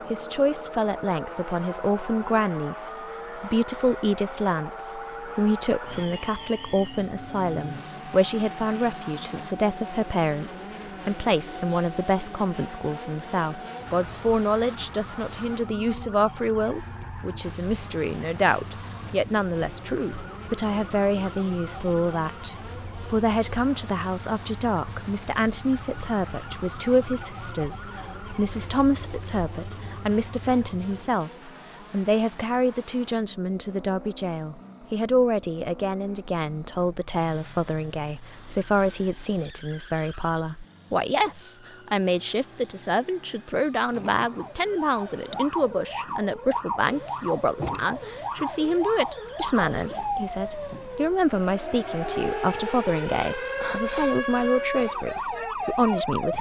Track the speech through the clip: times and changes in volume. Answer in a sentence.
You can hear the speech from 0.1 to 56.3 s, at a steady volume.